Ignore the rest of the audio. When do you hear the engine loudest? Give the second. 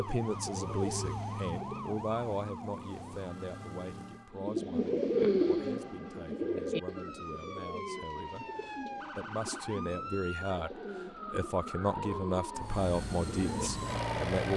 14 s.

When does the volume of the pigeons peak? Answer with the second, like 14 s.
5 s.